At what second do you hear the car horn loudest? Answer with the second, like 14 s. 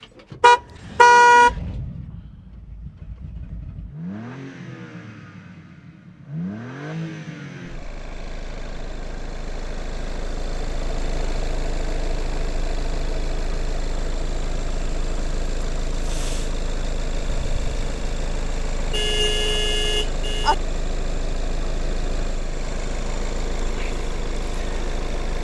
1 s.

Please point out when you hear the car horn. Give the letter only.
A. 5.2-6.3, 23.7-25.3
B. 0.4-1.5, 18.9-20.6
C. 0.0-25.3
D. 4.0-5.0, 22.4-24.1
B.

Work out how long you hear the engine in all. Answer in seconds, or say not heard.
25 s.